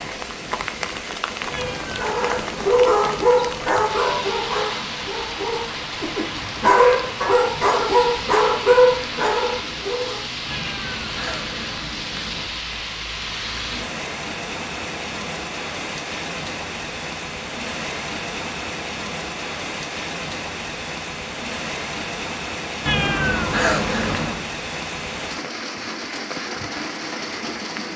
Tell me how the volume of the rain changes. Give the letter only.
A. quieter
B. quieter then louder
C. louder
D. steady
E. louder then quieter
D.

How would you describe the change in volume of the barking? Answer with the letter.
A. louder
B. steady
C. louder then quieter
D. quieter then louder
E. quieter
D.